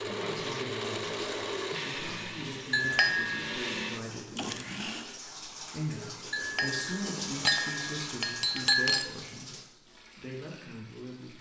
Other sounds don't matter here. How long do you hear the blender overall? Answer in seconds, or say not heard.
5 s.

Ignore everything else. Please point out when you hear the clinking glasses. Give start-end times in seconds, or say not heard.
2.7-3.5, 6.3-9.1.